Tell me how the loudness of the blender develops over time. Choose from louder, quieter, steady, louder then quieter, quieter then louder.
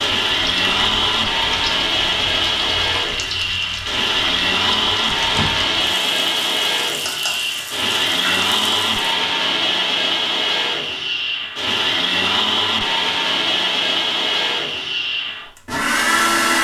steady.